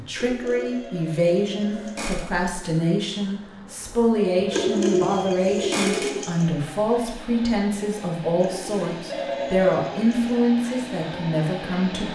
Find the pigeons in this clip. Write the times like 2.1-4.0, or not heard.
0.1-2.1, 4.5-6.5, 8.4-10.1.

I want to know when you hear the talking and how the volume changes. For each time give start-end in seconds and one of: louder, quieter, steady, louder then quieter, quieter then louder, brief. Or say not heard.
0.0-12.1 steady.